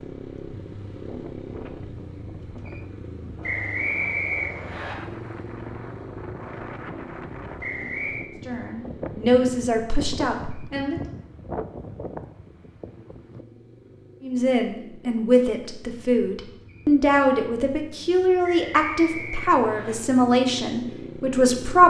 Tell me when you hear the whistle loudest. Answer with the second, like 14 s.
4 s.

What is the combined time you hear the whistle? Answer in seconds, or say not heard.
4 s.